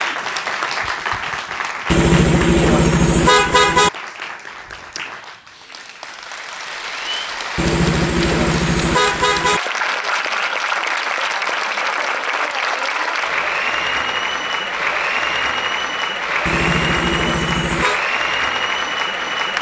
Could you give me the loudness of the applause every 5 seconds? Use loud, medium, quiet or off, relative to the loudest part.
medium, medium, loud, loud.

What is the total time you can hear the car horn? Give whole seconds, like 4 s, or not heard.
6 s.